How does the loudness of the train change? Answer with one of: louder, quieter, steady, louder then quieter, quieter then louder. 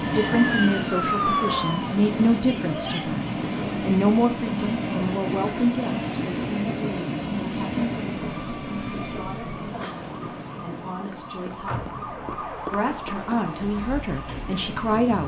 quieter.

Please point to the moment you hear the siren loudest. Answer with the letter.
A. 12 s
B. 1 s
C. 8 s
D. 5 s
B.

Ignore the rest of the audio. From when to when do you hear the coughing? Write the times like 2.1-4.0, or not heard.
2.5-3.1.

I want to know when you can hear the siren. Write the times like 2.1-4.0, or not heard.
0.1-1.9, 8.2-15.2.